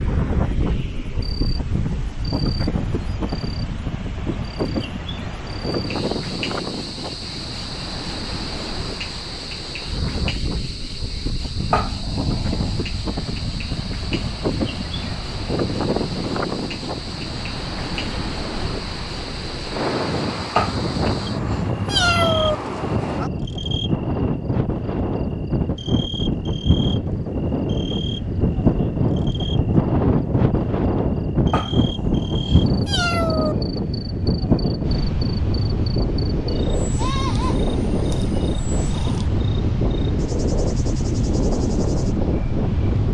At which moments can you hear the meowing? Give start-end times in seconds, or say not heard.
11.7-12.8, 20.6-22.6, 31.5-33.5.